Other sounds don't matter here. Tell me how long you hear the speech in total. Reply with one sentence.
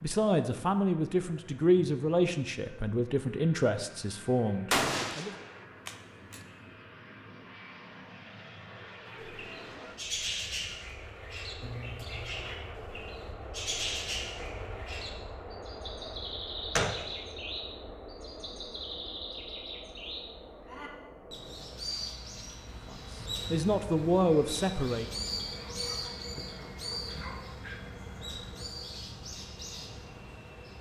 The speech can be heard for 8 seconds in total.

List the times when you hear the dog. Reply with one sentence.
You can hear the dog from 25.6 to 27.9 s.